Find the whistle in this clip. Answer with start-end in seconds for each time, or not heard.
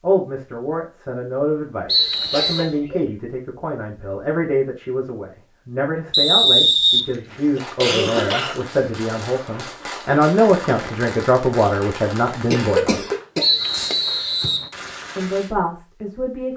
1.9-2.7, 6.1-7.0, 13.4-14.7.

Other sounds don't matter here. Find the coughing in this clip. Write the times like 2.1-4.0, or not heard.
2.1-3.0, 7.1-8.7, 12.5-13.9.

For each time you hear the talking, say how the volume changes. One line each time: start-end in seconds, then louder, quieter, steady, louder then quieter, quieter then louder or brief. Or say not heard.
0.0-13.1 louder
15.2-16.5 brief.